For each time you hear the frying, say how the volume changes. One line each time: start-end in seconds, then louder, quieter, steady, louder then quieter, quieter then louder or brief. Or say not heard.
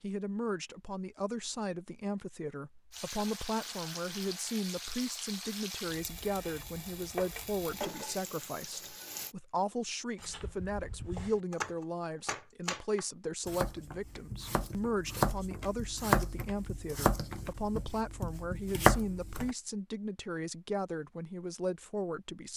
2.9-9.3 steady.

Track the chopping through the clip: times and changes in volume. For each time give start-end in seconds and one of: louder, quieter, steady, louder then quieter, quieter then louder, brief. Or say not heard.
10.2-19.6 louder.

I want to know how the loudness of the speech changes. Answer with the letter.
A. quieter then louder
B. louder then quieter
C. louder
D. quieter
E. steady
E.